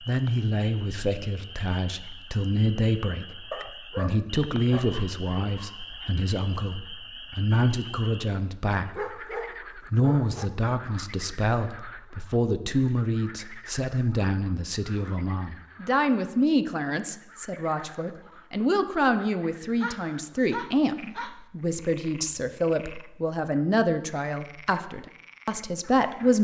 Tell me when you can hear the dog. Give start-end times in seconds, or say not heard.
3.5-5.8, 8.9-10.5, 19.8-21.4.